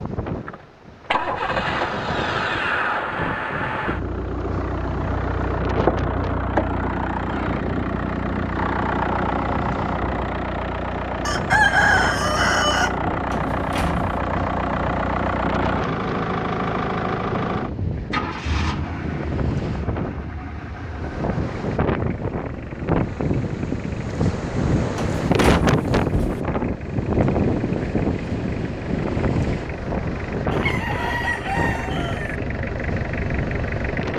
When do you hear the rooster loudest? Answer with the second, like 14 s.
12 s.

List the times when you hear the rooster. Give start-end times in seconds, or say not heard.
11.2-12.9, 30.5-32.4.